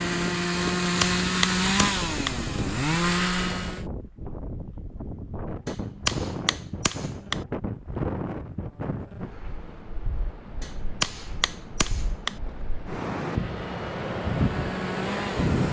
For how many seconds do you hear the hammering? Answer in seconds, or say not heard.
5 s.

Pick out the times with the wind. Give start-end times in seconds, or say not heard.
0.0-15.6.